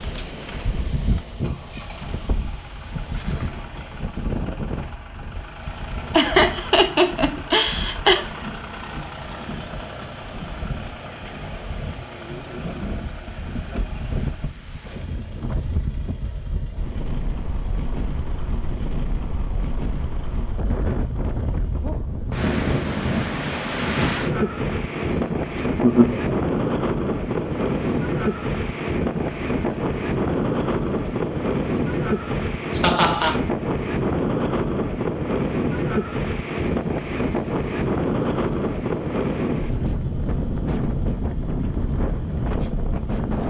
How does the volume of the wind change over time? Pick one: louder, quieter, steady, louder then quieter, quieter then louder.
louder.